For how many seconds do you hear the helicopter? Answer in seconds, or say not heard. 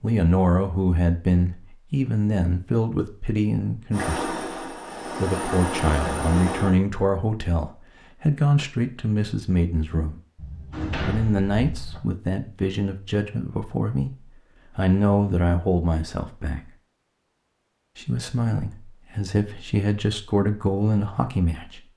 3 s.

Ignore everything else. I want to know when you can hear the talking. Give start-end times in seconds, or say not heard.
0.0-4.3, 5.2-10.2, 11.0-16.7, 17.9-21.9.